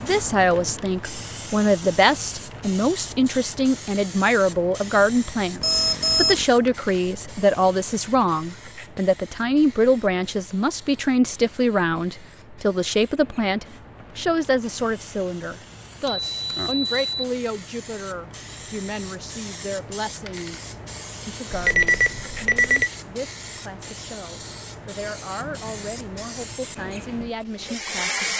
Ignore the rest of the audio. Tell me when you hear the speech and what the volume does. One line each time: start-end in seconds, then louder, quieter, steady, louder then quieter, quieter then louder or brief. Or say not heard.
0.0-28.3 quieter.